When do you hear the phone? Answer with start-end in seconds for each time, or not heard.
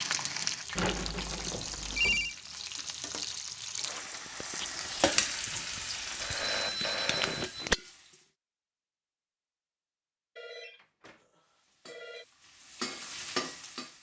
0.8-2.4, 6.2-7.7, 10.3-12.2.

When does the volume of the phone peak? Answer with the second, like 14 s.
2 s.